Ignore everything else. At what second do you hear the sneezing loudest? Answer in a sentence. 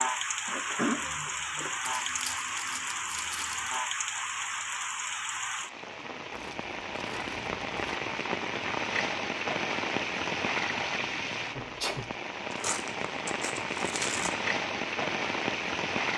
The volume of the sneezing peaks at 1 second.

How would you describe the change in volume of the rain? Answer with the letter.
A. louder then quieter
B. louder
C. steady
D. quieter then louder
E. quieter
C.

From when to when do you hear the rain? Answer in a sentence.
You can hear the rain from 0.0 to 16.1 s.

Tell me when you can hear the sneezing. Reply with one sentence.
The sneezing can be heard from 0.5 to 1.8 s and from 11.6 to 12.1 s.